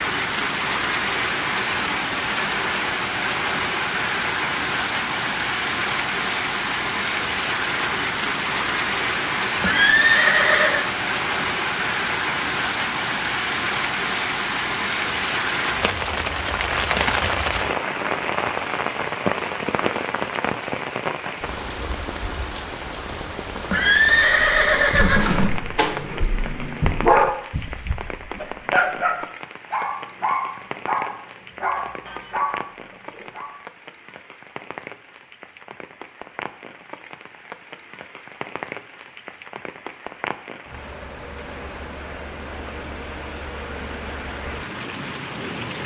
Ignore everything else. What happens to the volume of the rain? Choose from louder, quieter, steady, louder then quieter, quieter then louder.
quieter.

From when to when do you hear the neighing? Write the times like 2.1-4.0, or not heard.
9.6-10.8, 23.6-25.6.